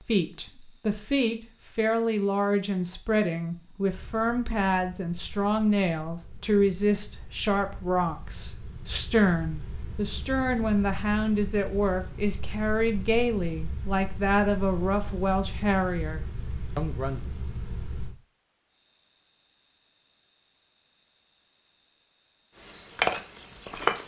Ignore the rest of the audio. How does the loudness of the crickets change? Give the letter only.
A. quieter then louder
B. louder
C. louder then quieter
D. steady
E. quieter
A.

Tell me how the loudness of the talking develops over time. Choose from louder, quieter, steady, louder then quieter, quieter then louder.
steady.